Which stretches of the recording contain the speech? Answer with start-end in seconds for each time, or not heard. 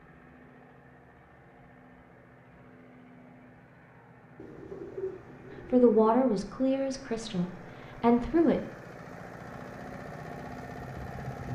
5.7-8.6.